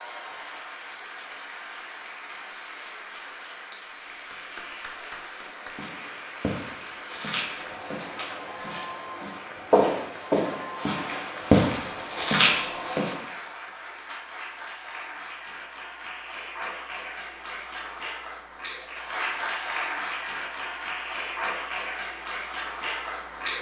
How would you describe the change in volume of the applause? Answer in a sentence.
The volume of the applause goes up.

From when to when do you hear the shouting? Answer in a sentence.
The shouting can't be heard in this clip.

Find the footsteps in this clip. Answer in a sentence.
The footsteps can be heard from 5.7 to 13.2 s.